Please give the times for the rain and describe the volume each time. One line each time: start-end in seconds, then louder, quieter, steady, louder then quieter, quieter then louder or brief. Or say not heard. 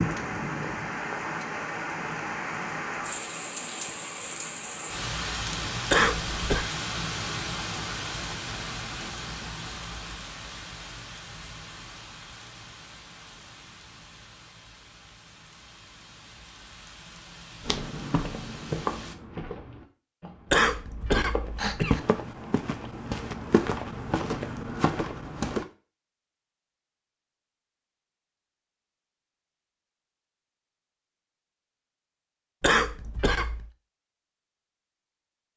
0.0-19.1 quieter.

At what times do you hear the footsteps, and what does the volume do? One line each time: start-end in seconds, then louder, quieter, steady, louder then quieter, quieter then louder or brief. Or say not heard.
17.6-25.6 quieter then louder.